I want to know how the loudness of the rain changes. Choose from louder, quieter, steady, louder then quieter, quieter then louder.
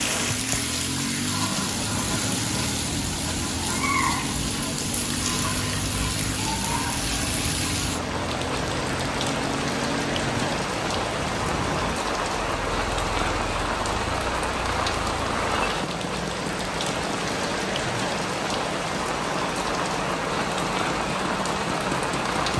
steady.